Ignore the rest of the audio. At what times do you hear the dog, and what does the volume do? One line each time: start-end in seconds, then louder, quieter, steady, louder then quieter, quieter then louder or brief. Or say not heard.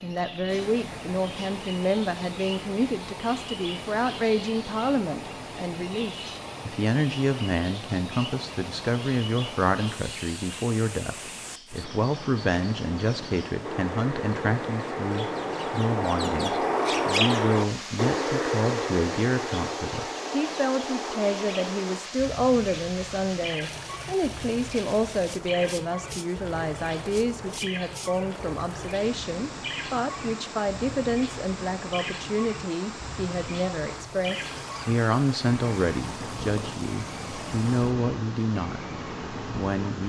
not heard.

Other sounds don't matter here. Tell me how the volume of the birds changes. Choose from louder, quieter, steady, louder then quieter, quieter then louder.
louder then quieter.